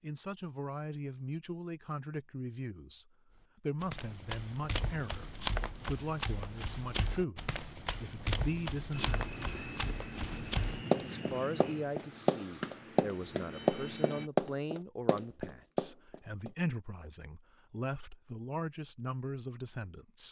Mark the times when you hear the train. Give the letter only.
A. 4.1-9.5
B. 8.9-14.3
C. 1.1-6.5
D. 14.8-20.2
B.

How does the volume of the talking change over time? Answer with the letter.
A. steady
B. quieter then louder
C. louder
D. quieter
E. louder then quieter
A.